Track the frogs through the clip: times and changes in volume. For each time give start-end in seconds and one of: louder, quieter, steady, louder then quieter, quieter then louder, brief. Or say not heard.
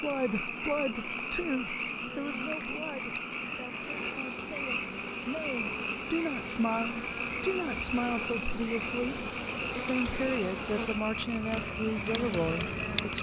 0.0-13.1 steady.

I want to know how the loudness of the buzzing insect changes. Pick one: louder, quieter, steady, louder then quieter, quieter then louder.
louder.